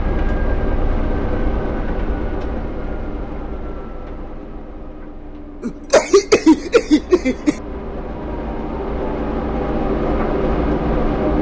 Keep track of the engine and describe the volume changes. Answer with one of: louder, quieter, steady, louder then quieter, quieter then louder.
quieter then louder.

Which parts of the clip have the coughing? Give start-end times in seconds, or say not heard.
5.6-7.5.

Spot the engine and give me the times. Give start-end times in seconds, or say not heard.
0.0-11.3.